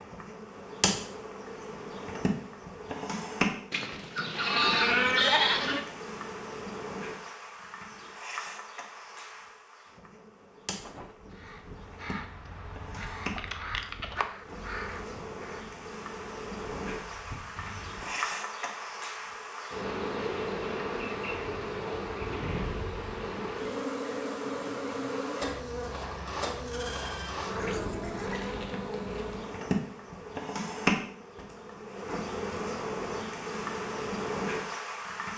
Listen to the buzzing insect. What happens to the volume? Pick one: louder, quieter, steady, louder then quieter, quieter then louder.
quieter then louder.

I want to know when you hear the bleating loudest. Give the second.
5 s.